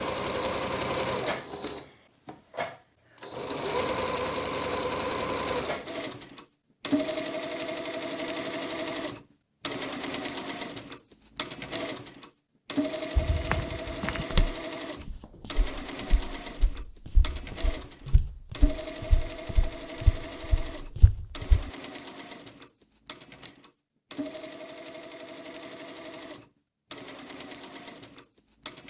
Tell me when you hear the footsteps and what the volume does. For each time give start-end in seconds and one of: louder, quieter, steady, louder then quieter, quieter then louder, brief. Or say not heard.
13.2-21.7 quieter then louder.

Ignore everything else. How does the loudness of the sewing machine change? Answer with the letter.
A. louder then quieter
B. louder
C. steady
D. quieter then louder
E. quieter
E.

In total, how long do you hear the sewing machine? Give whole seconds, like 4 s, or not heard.
29 s.